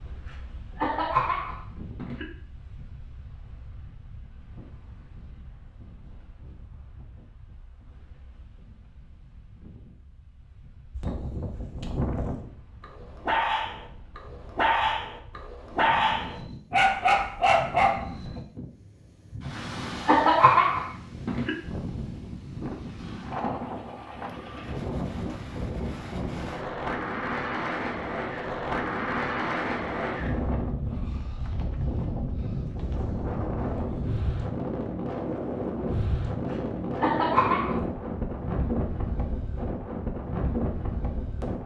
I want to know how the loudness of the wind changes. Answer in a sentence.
The loudness of the wind goes up.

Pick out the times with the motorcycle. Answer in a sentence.
The motorcycle can't be heard in this clip.